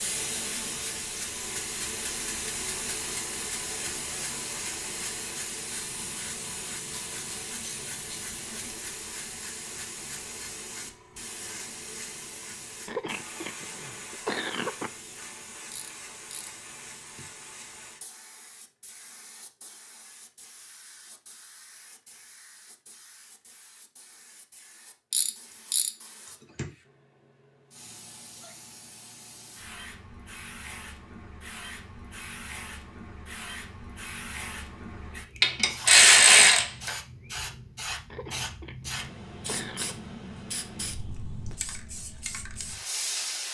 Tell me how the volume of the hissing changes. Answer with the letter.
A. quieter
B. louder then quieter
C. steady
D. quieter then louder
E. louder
D.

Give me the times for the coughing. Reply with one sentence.
The coughing can be heard from 12.8 to 14.9 s and from 38.1 to 40.0 s.